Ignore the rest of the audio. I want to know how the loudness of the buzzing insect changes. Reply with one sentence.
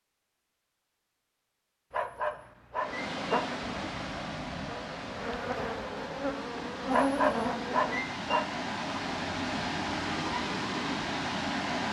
The volume of the buzzing insect goes down, then up.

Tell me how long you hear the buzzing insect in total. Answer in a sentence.
The buzzing insect can be heard for 5 seconds in total.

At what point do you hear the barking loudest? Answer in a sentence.
The loudest moment of the barking is at 7 seconds.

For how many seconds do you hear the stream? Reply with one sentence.
The stream can be heard for 9 seconds in total.